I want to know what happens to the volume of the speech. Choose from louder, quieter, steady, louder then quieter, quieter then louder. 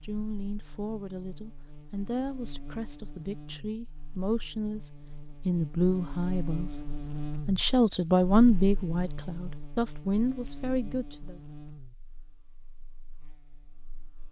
louder then quieter.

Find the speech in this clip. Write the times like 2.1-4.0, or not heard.
0.0-11.4.